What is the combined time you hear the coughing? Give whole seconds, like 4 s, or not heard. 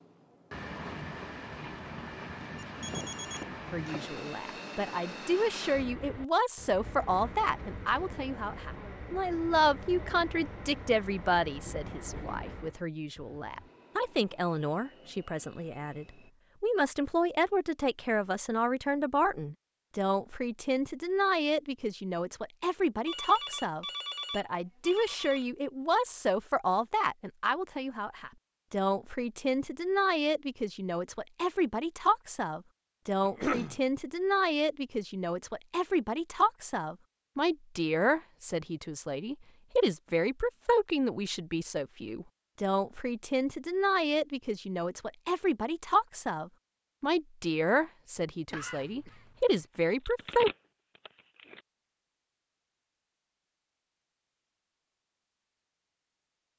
3 s.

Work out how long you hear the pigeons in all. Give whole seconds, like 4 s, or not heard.
not heard.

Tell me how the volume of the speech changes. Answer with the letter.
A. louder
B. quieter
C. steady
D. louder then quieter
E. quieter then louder
C.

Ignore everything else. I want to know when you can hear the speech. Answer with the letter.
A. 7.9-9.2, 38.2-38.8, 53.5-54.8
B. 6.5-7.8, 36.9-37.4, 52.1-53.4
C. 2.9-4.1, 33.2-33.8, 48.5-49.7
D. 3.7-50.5
D.